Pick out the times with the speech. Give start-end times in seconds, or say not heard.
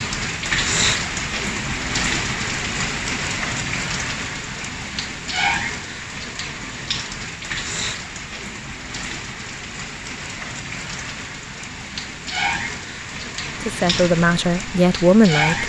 13.7-15.6.